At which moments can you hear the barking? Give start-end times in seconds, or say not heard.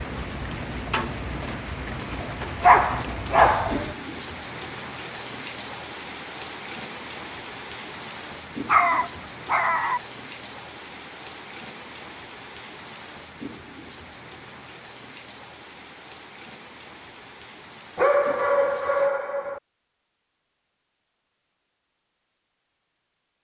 2.6-4.0, 8.7-10.0, 17.9-19.6.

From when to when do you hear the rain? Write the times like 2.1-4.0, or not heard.
0.0-19.1.